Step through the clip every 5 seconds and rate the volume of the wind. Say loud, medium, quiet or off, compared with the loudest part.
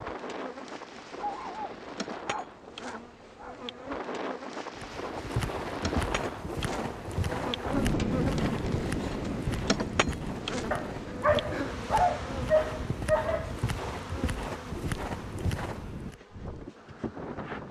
medium, loud, medium, medium.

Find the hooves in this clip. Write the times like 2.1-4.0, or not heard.
4.8-16.1.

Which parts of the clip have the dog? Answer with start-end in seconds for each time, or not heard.
1.1-3.9, 10.7-13.6.